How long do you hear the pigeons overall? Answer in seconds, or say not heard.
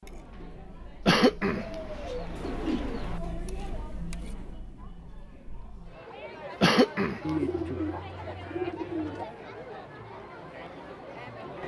4 s.